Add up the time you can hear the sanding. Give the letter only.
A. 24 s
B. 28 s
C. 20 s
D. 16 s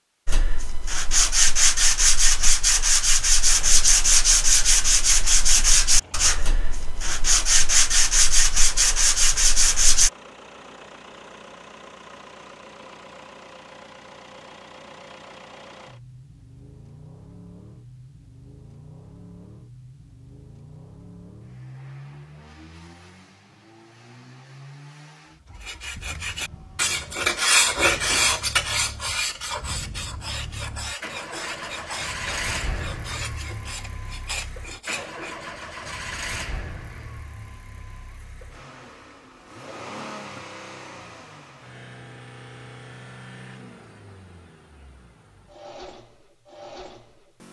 C.